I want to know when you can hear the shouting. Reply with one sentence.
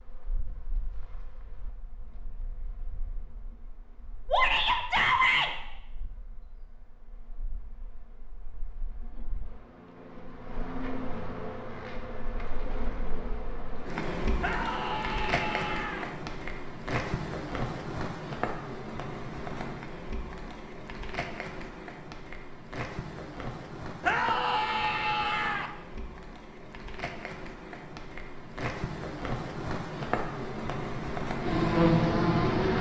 The shouting can be heard from 4.3 to 5.5 s, from 14.4 to 16.1 s and from 24.0 to 25.7 s.